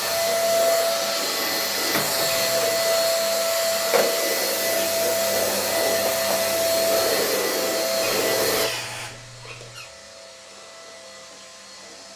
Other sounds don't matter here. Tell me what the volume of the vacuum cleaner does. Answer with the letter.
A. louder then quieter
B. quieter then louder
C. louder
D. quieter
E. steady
D.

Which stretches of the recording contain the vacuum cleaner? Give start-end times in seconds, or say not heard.
0.0-12.1.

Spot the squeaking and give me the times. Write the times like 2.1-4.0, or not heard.
2.2-2.8, 8.0-9.9.